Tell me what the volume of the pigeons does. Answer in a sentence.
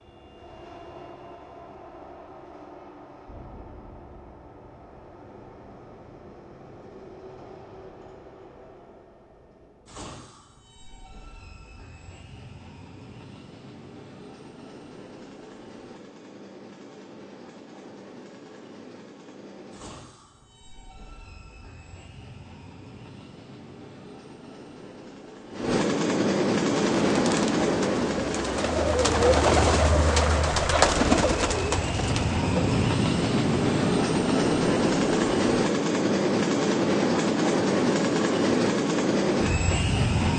The loudness of the pigeons goes up, then down.